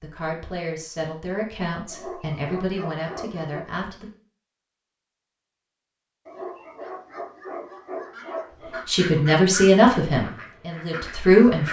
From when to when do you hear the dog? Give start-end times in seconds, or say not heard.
1.9-3.7, 6.2-8.8.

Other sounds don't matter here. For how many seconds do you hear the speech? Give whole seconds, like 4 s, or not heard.
7 s.